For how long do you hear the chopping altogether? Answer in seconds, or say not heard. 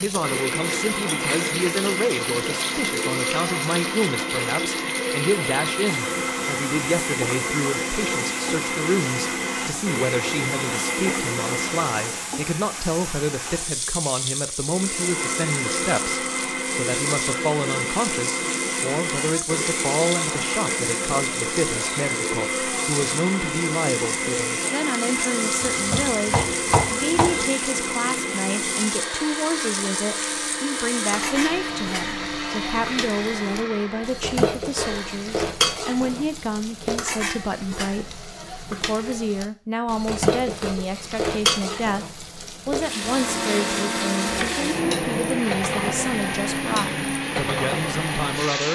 2 s.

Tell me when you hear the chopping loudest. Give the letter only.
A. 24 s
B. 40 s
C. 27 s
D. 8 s
C.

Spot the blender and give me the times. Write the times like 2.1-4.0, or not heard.
0.1-12.3, 14.6-35.3, 42.8-48.7.